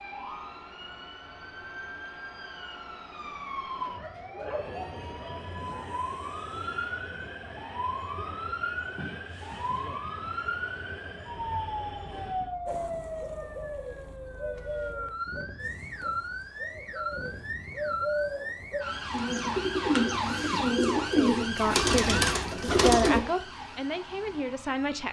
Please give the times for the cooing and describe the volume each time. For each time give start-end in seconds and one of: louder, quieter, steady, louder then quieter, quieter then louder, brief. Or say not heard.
12.7-23.2 quieter then louder.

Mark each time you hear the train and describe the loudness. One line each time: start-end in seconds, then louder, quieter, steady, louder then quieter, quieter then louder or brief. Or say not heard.
4.5-12.6 steady.